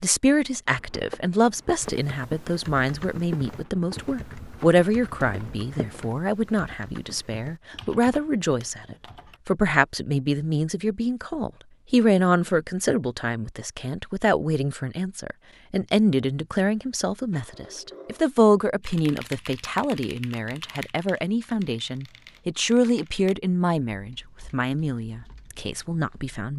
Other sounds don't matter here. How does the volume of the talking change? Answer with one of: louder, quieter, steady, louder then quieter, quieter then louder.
steady.